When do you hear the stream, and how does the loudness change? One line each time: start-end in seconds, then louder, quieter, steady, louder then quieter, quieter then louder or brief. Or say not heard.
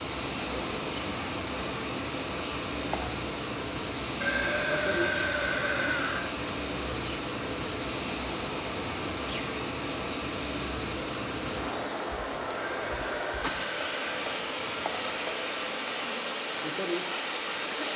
0.0-17.9 steady.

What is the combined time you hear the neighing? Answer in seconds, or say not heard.
3 s.